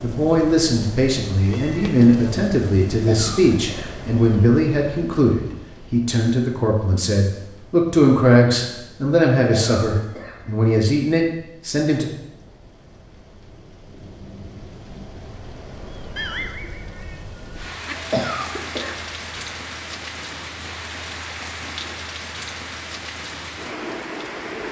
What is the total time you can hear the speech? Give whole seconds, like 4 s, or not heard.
12 s.